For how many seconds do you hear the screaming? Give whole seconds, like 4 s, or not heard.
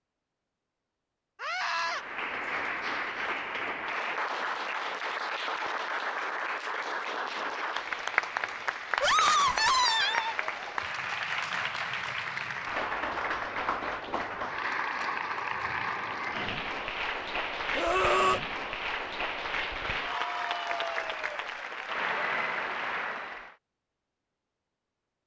3 s.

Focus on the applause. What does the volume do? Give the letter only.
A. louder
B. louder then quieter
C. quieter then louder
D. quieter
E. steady
E.